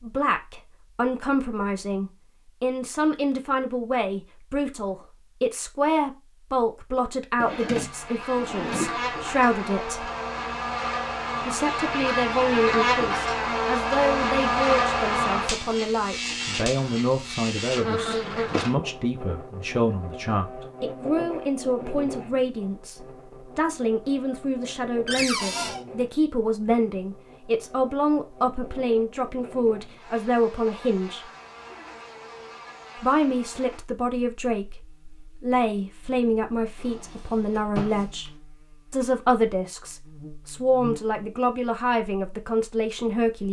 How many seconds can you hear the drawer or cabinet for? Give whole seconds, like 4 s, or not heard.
4 s.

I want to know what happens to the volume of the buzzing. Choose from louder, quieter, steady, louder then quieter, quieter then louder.
quieter.